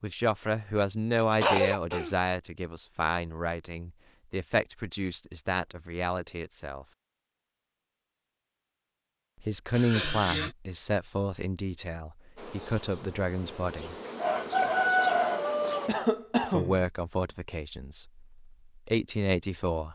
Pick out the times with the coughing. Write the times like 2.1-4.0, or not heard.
1.4-2.1, 9.7-10.6, 15.8-16.9.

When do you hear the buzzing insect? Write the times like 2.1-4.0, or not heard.
12.3-15.9.